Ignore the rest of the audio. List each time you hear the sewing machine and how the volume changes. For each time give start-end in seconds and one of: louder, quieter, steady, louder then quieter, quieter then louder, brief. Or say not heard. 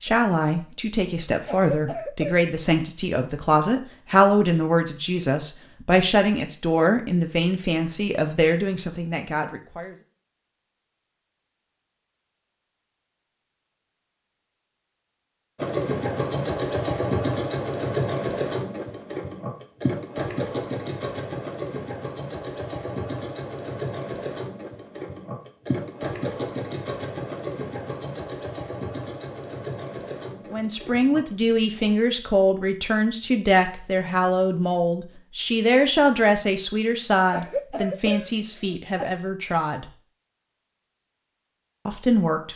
15.6-31.9 quieter.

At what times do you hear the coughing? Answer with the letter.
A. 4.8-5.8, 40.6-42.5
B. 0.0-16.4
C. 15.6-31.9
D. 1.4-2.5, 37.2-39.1
D.